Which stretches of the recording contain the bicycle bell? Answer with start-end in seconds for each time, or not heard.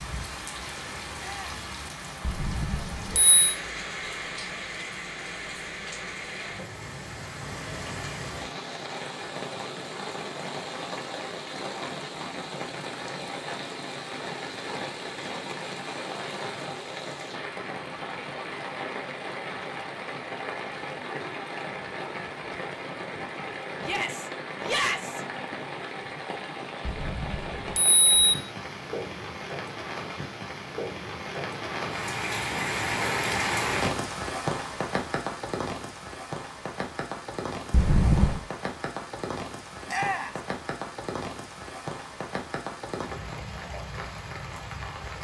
2.2-3.5, 26.9-28.4, 37.7-38.4.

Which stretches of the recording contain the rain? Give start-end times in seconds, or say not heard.
0.0-45.2.